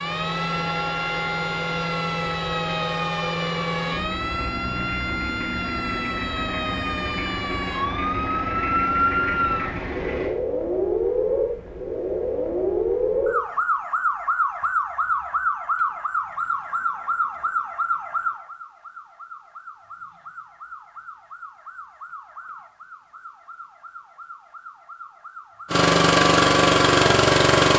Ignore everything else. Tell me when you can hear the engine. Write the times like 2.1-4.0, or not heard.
0.0-10.3, 25.7-27.7.